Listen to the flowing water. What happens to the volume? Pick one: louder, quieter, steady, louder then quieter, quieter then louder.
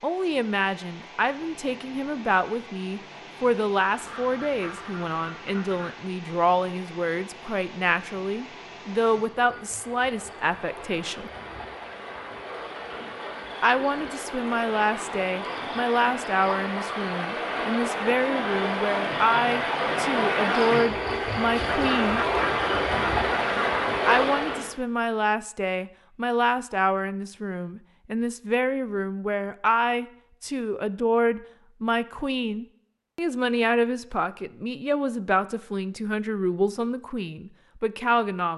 louder.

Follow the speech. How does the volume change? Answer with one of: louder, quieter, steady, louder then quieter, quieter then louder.
steady.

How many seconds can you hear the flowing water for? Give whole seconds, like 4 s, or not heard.
25 s.